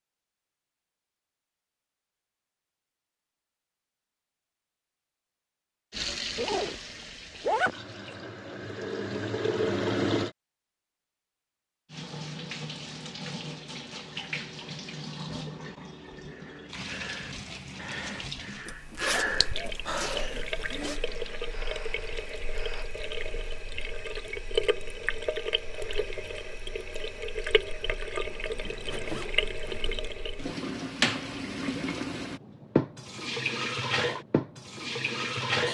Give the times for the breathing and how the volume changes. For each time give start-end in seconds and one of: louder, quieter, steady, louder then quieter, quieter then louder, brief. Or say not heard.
16.1-22.9 louder then quieter.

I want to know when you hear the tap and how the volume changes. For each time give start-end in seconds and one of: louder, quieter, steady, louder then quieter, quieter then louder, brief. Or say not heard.
5.9-10.3 quieter then louder
11.9-35.6 louder.